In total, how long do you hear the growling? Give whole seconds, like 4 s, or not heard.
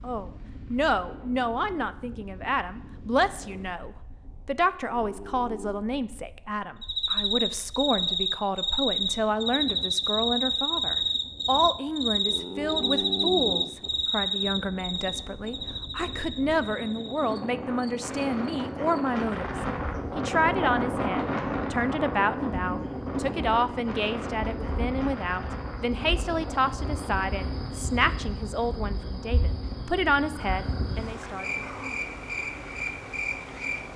4 s.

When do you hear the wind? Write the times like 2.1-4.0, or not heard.
0.0-27.7.